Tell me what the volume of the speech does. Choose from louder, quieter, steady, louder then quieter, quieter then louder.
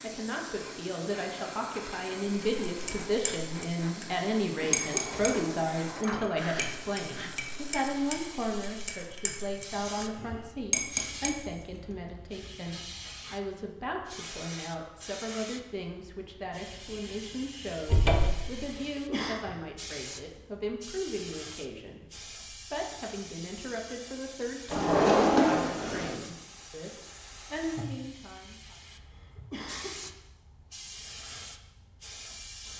quieter.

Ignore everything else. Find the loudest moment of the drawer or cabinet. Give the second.
25 s.